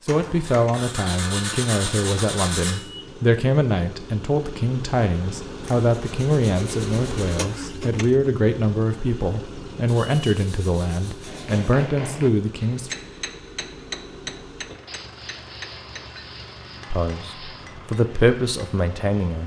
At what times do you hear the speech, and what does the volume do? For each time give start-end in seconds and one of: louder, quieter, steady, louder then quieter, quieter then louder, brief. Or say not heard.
0.1-12.9 steady
16.9-19.4 brief.